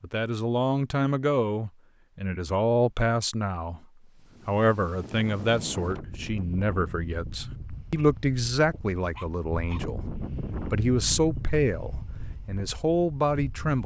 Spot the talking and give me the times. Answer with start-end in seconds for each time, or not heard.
0.0-3.9, 4.5-13.8.